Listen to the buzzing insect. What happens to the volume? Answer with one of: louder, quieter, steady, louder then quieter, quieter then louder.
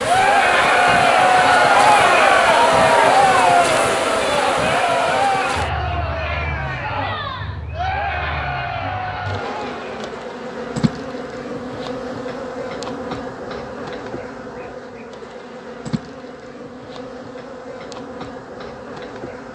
quieter.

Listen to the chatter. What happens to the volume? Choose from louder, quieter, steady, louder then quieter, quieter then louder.
quieter.